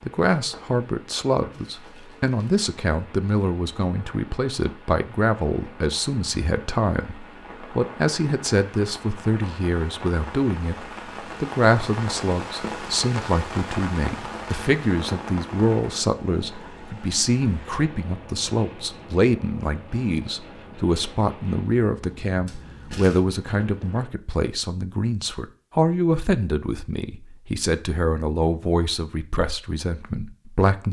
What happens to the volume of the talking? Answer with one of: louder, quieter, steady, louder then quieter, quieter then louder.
steady.